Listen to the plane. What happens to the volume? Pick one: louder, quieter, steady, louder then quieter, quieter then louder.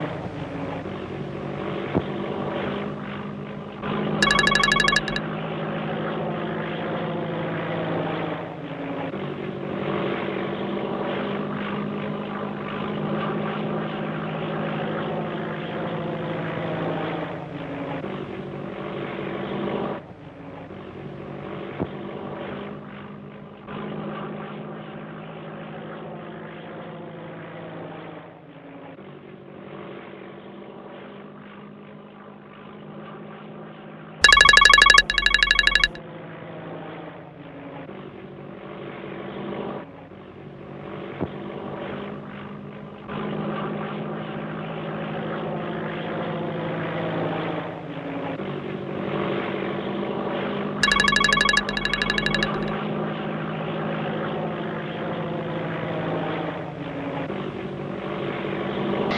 quieter then louder.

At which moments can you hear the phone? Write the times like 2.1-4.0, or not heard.
4.2-5.2, 34.2-35.9, 50.8-52.8.